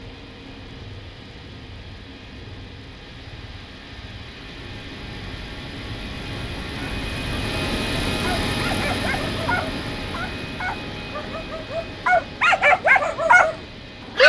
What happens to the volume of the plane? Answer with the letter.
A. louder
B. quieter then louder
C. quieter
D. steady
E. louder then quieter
E.